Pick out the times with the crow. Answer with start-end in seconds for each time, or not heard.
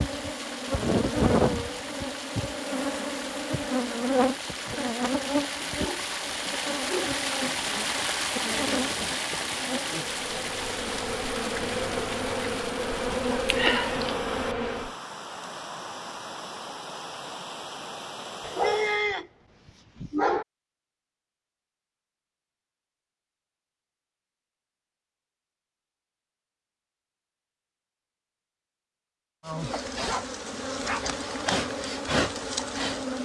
not heard.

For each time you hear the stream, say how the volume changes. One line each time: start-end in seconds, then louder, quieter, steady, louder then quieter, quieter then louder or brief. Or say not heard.
0.0-19.1 louder then quieter.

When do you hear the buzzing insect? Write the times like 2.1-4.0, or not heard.
0.0-14.9, 29.4-33.2.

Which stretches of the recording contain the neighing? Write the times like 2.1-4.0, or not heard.
not heard.